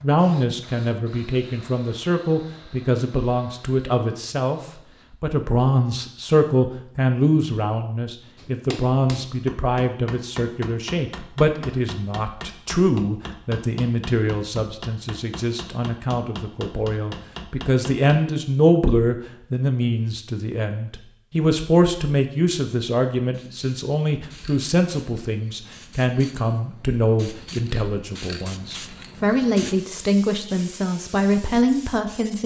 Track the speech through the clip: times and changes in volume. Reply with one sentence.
The speech can be heard from 0.0 to 32.4 s, at a steady volume.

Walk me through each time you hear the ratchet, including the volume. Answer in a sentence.
You can't hear the ratchet here.